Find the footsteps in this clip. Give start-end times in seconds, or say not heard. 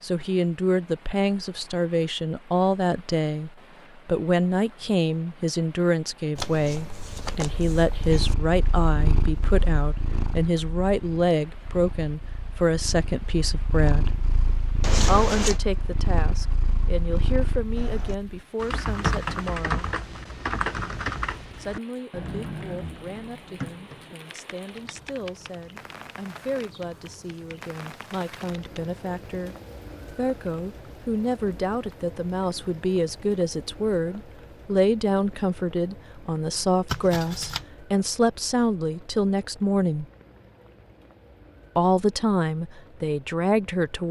not heard.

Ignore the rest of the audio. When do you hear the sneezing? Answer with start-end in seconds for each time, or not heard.
not heard.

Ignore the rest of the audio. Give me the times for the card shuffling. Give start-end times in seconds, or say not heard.
6.3-8.3, 14.8-15.6, 36.9-37.6.